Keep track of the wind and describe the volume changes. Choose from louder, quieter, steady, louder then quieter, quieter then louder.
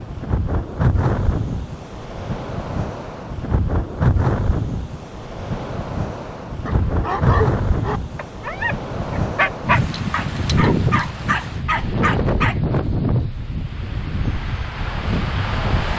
steady.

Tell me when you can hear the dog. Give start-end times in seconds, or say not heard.
6.7-12.6.